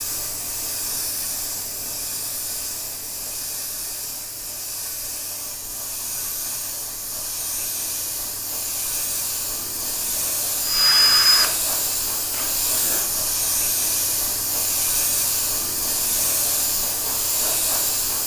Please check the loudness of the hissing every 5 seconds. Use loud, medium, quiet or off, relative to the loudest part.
medium, medium, loud, loud.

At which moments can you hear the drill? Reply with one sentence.
You can hear the drill from 10.6 to 12.6 s.